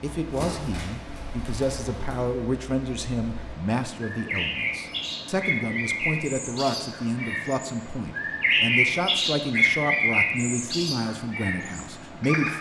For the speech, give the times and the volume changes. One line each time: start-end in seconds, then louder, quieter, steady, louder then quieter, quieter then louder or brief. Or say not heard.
0.0-12.5 steady.